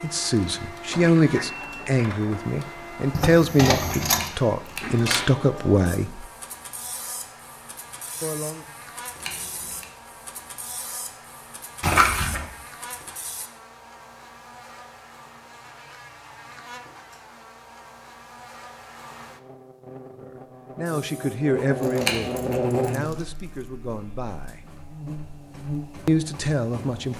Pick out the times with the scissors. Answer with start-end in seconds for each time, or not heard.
4.1-5.0, 9.2-9.8, 22.0-22.6.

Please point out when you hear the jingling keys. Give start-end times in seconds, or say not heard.
3.1-4.3, 11.8-12.4, 21.7-23.7.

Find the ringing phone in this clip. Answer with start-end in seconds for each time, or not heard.
not heard.